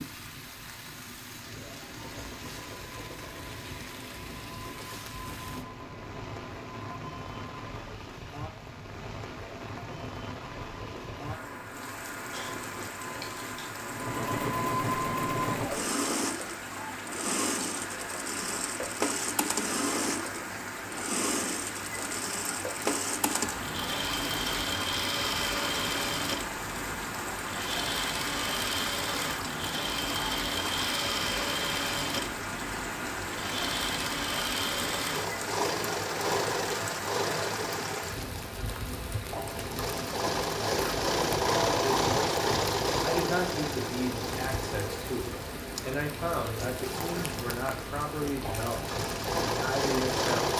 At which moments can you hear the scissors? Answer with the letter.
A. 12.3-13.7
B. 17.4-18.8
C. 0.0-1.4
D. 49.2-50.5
A.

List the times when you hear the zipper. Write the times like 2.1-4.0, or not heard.
not heard.